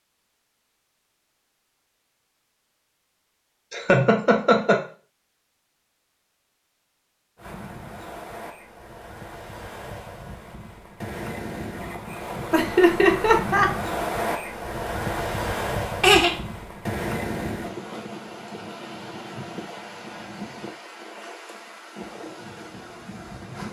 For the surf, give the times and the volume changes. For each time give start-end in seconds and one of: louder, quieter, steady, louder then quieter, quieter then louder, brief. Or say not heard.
7.3-23.6 louder then quieter.